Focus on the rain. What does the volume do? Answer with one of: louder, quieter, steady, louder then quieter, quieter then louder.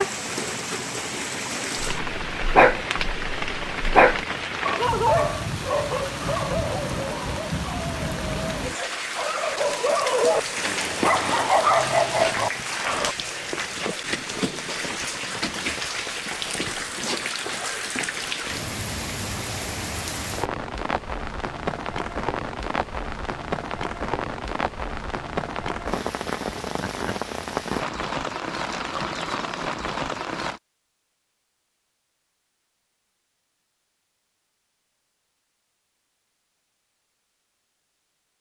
steady.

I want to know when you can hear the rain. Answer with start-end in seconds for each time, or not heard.
0.0-30.6.